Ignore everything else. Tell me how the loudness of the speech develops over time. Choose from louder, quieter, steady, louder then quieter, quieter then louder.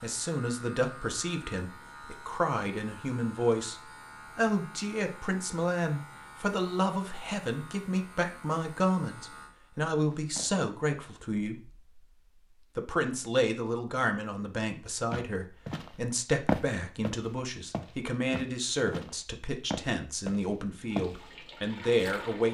steady.